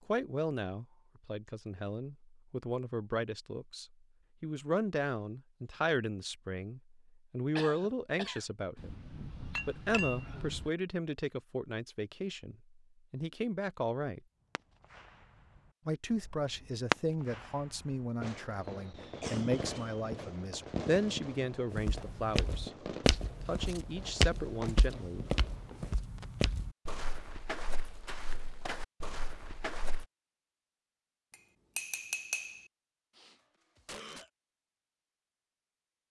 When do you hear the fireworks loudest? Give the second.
17 s.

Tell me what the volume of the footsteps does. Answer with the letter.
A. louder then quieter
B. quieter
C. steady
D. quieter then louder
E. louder
B.